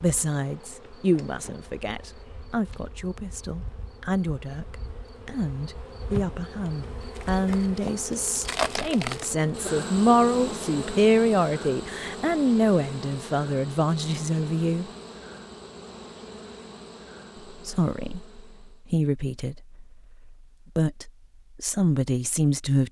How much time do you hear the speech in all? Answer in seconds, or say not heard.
20 s.